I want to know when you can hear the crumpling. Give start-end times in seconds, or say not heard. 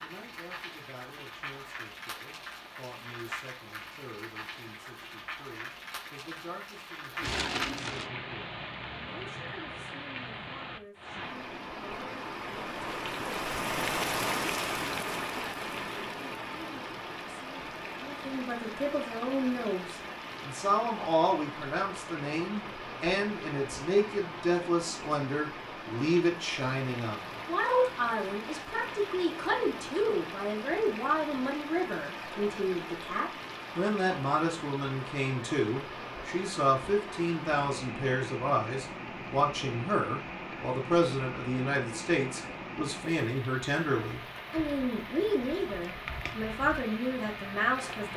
7.2-8.1, 45.9-46.5.